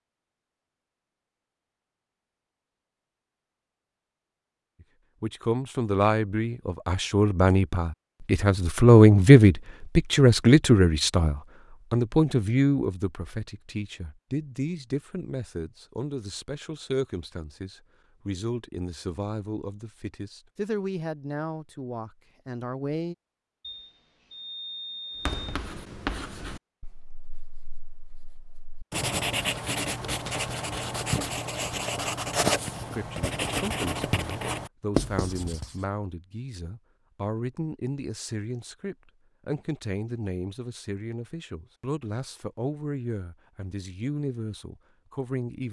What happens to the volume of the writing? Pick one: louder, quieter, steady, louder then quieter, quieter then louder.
louder.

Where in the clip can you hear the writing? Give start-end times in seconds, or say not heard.
25.2-35.8.